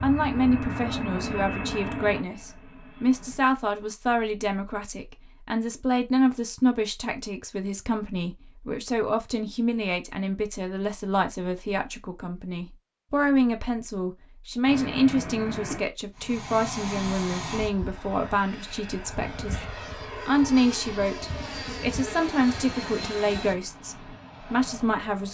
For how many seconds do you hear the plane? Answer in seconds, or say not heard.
14 s.